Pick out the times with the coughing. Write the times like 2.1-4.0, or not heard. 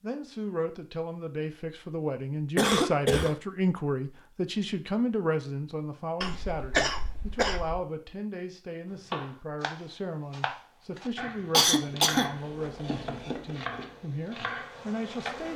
2.5-3.4, 6.2-7.8, 11.5-12.3.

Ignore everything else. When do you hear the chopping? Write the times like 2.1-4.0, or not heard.
8.9-15.0.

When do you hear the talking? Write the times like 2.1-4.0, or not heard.
0.0-15.5.